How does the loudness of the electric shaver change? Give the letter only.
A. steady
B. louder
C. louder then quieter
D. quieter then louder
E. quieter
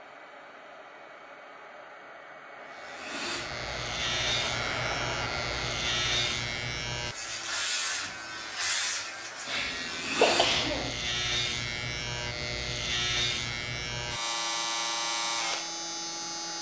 A.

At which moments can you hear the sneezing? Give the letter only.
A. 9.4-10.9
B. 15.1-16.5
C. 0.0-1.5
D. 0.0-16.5
A.